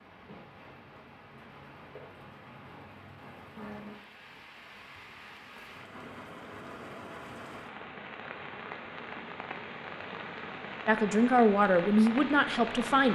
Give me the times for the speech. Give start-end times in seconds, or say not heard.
10.8-13.1.